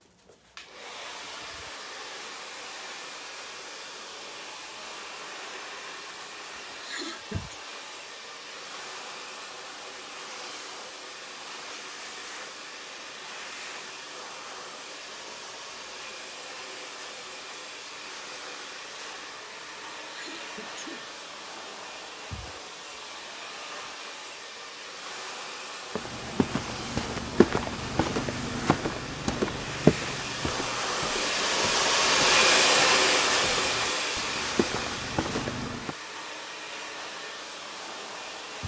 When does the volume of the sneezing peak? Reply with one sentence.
The loudest moment of the sneezing is at 7 seconds.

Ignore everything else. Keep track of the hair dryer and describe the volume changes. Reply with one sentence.
The volume of the hair dryer goes up.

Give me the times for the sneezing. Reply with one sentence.
You can hear the sneezing from 6.8 to 7.6 s and from 20.1 to 21.1 s.